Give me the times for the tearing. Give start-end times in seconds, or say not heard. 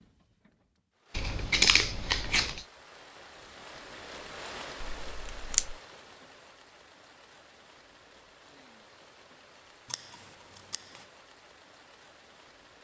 not heard.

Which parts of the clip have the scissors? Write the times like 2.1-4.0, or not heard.
1.1-2.6, 4.8-5.8, 9.9-11.0.